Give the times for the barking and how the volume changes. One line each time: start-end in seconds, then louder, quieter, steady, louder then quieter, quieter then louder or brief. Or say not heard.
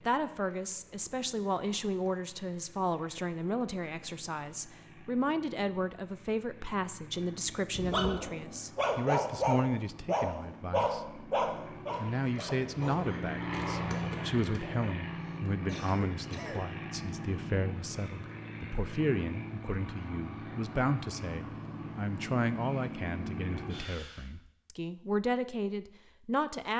7.7-14.9 quieter.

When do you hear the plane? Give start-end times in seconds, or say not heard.
0.0-24.3.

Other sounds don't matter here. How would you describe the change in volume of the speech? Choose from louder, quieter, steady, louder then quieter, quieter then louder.
steady.